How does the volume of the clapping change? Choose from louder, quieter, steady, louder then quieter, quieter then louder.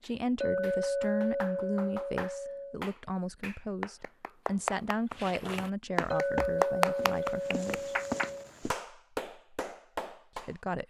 louder then quieter.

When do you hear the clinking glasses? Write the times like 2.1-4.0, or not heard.
0.4-2.8, 6.1-8.5.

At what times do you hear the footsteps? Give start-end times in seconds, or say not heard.
5.1-8.8.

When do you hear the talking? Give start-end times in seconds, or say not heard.
0.0-8.0, 10.3-10.8.